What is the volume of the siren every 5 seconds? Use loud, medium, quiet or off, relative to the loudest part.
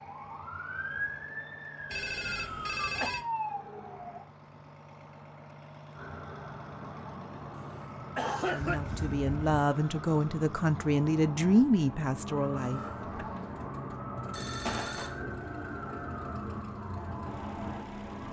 loud, medium, loud, loud.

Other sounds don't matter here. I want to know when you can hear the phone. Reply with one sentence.
You can hear the phone from 1.9 to 3.2 s, from 8.6 to 9.7 s and from 14.3 to 15.2 s.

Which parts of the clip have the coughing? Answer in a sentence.
The coughing can be heard from 2.4 to 3.1 s, from 7.5 to 8.8 s and from 12.6 to 13.1 s.